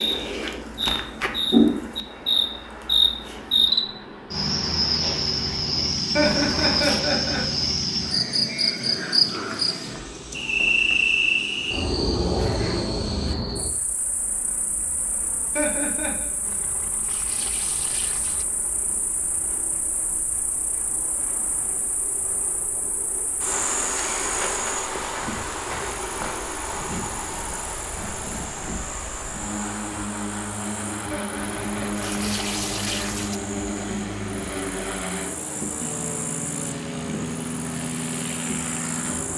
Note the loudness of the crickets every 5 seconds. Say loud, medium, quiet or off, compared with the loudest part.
loud, loud, loud, quiet, medium, medium, quiet, quiet.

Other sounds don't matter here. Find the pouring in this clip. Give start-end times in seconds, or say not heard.
6.2-7.0, 16.4-18.4, 31.5-33.4.